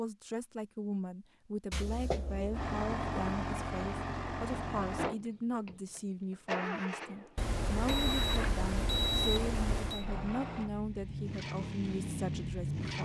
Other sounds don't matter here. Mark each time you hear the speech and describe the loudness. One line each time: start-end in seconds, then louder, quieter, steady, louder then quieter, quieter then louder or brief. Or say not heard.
0.0-13.0 steady.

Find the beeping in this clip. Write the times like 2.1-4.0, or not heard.
1.7-2.7, 7.3-10.1.